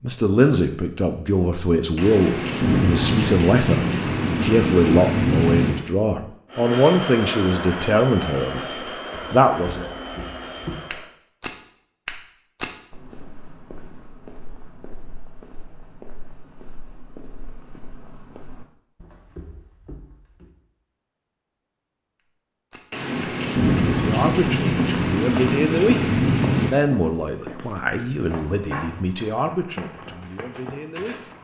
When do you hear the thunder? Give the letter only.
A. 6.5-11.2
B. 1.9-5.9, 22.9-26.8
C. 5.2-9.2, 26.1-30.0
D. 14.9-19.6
B.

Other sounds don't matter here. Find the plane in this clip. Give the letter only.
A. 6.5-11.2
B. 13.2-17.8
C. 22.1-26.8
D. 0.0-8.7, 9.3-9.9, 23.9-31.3
A.